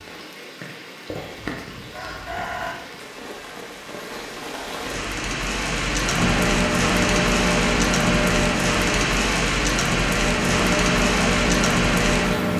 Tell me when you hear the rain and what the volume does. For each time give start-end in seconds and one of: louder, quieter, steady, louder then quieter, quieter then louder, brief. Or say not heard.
0.0-12.5 louder.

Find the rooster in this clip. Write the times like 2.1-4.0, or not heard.
1.1-2.8.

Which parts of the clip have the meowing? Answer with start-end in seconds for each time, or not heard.
not heard.